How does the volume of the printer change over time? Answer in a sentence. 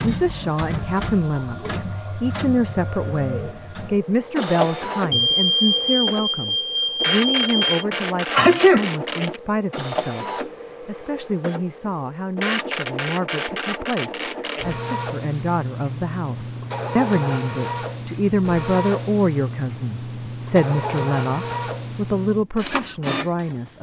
The volume of the printer stays about the same.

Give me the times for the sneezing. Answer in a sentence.
The sneezing can be heard from 8.3 to 9.3 s.